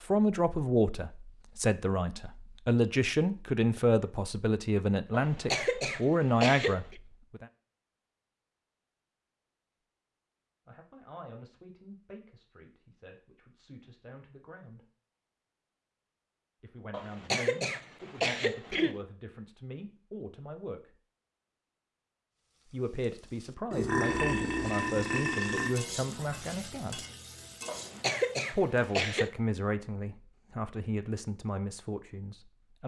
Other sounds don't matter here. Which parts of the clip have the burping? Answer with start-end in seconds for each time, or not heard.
23.7-25.7.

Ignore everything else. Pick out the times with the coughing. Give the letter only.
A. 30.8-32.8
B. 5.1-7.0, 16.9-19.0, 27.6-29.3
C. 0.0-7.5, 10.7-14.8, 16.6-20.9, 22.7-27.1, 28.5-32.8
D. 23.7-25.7
B.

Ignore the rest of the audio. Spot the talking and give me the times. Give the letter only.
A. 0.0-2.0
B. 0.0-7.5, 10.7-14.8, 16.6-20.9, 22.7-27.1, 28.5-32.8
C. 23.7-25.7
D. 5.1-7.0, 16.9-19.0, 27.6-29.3
B.